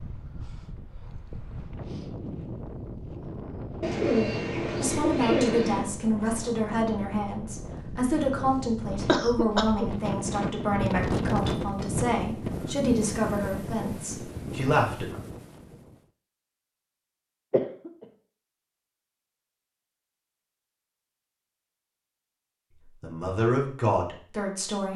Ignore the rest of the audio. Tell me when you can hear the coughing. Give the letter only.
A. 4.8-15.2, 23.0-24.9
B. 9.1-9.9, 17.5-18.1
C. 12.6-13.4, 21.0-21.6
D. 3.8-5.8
B.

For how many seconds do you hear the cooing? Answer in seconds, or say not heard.
2 s.